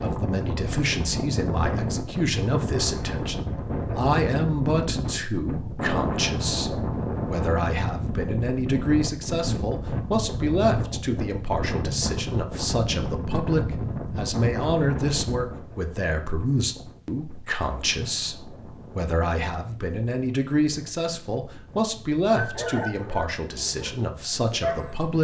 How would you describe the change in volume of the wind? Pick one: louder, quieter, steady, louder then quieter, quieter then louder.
quieter.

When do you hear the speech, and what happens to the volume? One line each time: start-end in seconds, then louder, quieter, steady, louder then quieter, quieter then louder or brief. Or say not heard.
0.0-25.2 steady.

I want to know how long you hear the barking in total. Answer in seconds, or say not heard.
3 s.